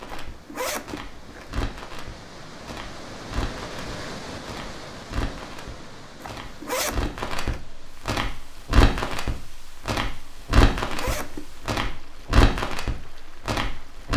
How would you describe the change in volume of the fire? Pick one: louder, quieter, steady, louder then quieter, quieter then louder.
louder.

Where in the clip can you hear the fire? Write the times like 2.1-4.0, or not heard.
0.0-14.1.